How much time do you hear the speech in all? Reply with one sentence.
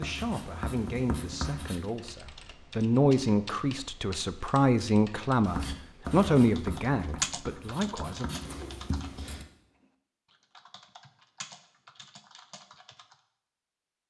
You can hear the speech for 8 seconds altogether.